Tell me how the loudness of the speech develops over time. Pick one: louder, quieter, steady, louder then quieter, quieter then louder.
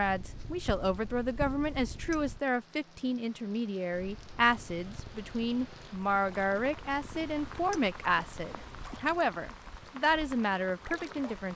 steady.